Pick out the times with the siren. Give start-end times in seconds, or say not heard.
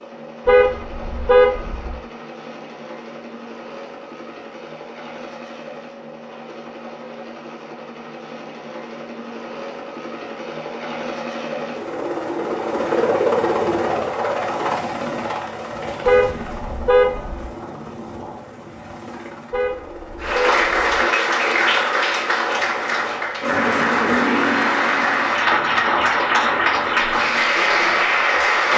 not heard.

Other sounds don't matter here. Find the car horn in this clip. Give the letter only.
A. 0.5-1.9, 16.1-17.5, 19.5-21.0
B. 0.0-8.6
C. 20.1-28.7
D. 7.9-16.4
A.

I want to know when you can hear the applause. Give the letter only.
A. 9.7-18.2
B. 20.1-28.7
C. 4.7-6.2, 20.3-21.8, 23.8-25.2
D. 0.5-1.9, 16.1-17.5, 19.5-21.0
B.